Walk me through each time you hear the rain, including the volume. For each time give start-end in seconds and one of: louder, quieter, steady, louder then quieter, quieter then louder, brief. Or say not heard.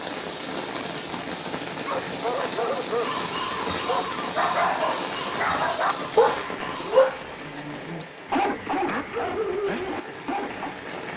0.0-11.1 quieter.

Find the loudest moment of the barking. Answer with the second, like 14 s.
7 s.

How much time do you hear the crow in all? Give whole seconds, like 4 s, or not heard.
4 s.